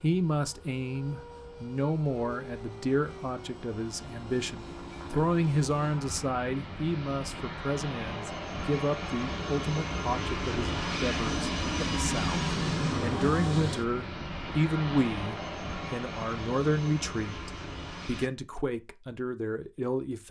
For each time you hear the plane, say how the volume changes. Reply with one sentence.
You can hear the plane from 0.0 to 18.3 s, getting louder then quieter.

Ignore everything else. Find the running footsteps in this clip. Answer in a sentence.
The running footsteps can't be heard in this clip.